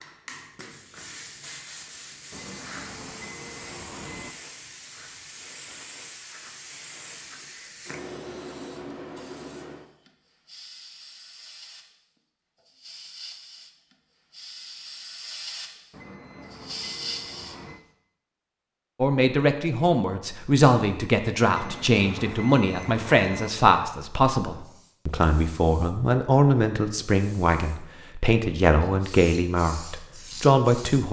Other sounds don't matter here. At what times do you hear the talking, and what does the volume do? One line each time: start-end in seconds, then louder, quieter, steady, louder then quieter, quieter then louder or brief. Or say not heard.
19.0-31.0 steady.